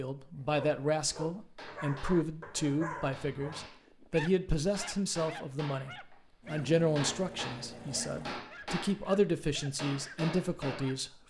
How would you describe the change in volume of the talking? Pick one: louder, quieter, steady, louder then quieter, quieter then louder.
steady.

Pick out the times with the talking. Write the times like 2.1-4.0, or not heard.
0.0-11.1.